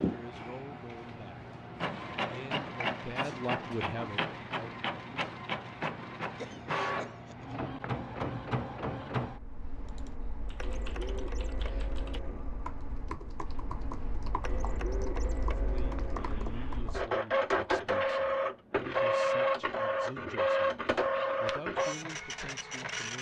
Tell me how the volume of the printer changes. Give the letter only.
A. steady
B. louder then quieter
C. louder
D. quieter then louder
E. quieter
D.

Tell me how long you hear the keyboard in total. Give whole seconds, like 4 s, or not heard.
8 s.